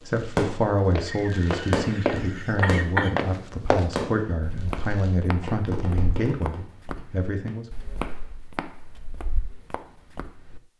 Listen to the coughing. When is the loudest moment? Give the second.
3 s.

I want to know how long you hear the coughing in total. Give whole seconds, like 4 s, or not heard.
2 s.